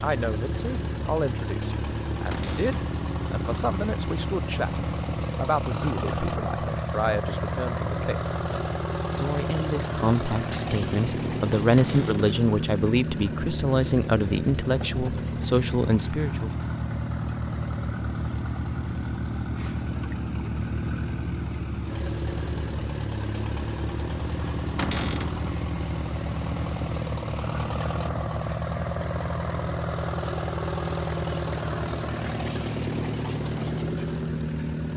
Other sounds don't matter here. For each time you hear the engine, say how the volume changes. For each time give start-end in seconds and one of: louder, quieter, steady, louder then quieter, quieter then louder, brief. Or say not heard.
0.0-34.9 steady.